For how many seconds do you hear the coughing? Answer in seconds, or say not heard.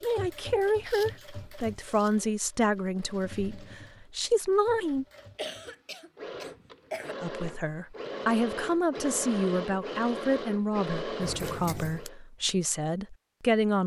2 s.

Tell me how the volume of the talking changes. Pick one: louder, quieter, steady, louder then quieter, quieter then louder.
steady.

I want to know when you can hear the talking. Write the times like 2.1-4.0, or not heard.
0.0-5.0, 7.2-13.8.